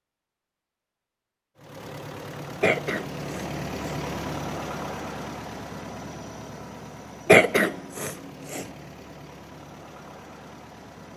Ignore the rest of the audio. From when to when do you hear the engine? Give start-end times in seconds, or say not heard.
1.6-11.1.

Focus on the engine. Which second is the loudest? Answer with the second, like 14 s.
4 s.